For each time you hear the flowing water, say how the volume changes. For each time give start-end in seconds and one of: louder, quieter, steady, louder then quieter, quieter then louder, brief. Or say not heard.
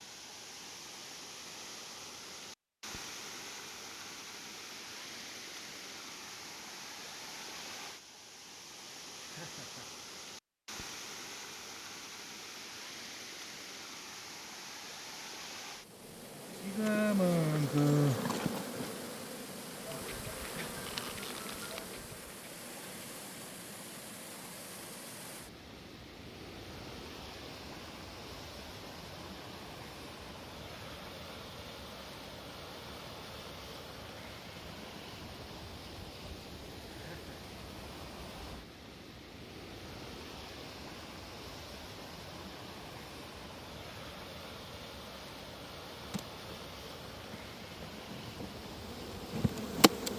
0.0-50.1 steady.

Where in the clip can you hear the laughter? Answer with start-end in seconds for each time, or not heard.
9.2-9.9, 20.4-21.0, 36.9-37.5.